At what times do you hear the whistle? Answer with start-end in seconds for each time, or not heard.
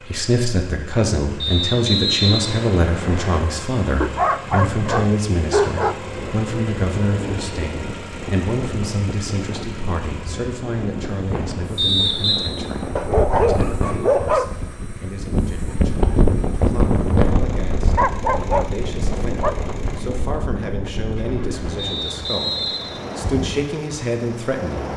1.4-3.4, 11.8-12.4, 21.8-23.3.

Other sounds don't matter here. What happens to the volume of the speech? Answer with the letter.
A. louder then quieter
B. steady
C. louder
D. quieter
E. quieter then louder
E.